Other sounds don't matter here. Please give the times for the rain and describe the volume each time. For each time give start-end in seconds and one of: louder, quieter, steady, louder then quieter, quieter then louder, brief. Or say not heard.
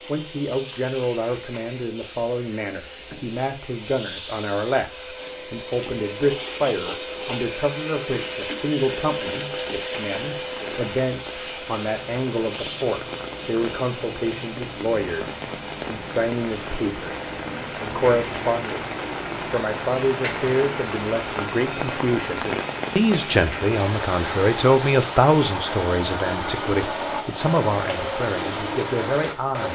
9.3-29.7 louder.